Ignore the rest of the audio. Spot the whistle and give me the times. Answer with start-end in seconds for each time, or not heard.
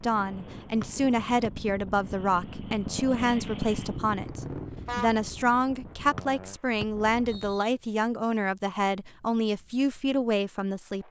0.8-1.5, 6.2-7.7.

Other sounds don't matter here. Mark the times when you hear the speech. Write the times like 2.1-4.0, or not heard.
0.0-11.0.